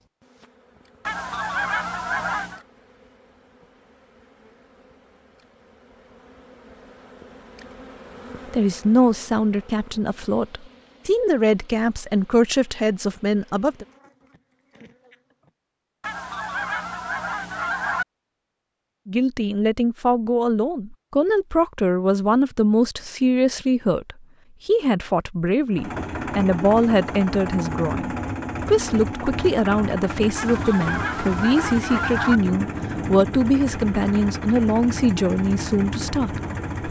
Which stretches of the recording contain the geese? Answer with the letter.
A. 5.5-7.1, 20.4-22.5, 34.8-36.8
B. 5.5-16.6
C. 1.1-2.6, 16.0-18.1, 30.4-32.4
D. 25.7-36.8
C.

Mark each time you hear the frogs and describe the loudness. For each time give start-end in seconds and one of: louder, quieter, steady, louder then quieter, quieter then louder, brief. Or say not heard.
not heard.